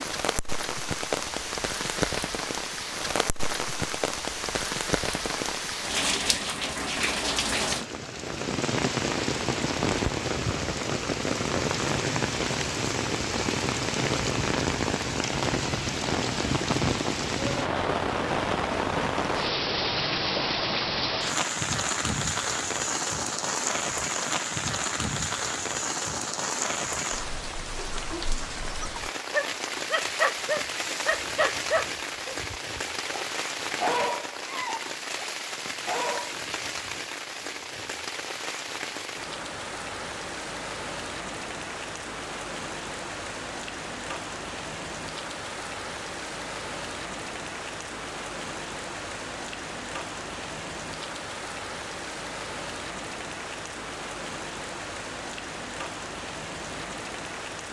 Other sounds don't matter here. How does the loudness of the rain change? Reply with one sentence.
The volume of the rain goes down.